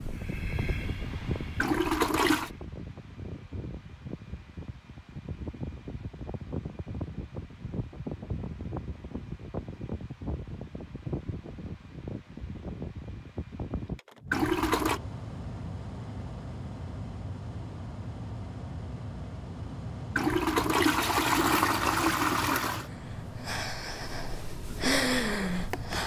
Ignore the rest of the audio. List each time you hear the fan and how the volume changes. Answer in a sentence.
You can hear the fan from 0.0 to 26.0 s, at a steady volume.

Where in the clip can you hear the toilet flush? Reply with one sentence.
You can hear the toilet flush from 1.6 to 2.5 s, from 14.3 to 15.0 s and from 20.1 to 22.9 s.